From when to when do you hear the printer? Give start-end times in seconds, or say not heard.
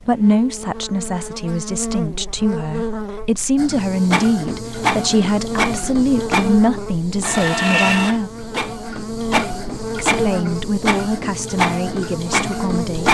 3.5-13.0.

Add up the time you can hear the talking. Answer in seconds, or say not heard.
11 s.